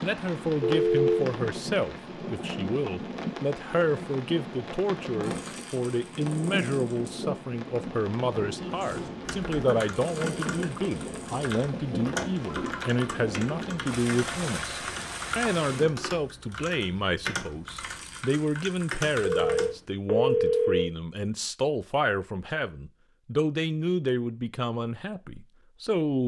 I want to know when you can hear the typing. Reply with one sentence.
You can hear the typing from 8.8 to 19.9 s.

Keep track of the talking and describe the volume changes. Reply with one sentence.
The loudness of the talking stays about the same.